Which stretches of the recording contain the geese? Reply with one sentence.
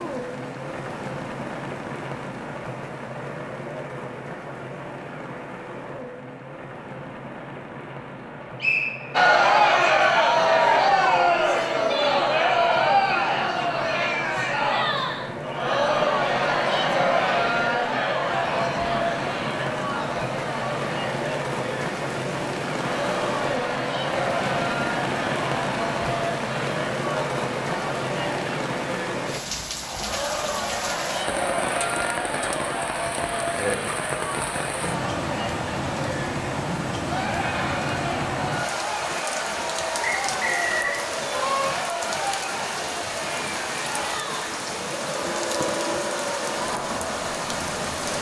You can hear the geese from 40.8 to 41.9 s.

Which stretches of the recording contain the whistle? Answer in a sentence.
The whistle can be heard from 8.6 to 9.2 s and from 40.2 to 41.0 s.